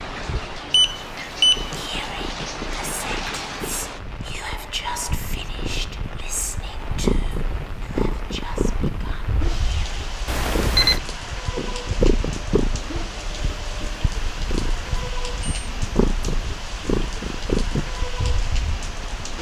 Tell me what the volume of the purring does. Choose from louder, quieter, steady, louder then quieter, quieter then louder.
louder.